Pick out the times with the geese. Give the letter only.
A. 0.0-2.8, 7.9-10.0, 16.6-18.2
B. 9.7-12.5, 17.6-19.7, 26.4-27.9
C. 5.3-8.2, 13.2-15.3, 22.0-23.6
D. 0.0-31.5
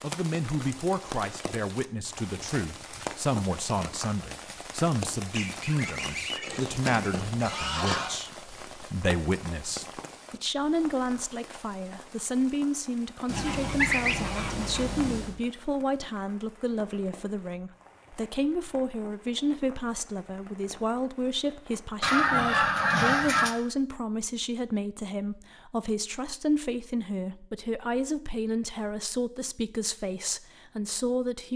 C.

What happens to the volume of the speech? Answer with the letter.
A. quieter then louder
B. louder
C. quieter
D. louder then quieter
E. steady
E.